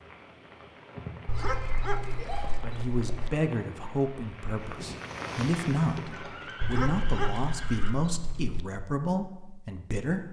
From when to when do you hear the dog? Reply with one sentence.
You can hear the dog from 1.2 to 3.3 s and from 6.6 to 8.6 s.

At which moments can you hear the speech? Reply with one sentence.
The speech can be heard from 2.6 to 10.2 s.